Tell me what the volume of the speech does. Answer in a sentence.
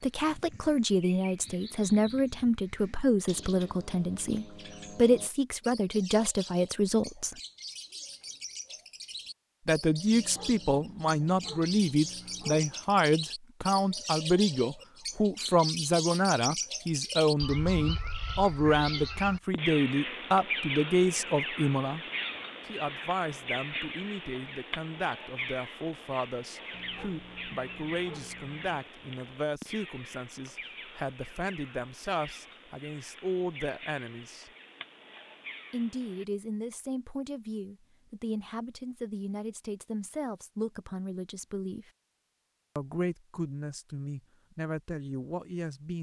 The loudness of the speech goes down.